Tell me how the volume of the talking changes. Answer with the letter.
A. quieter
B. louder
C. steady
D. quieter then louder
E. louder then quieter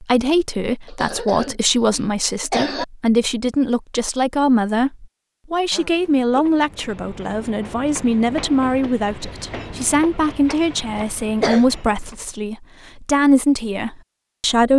C.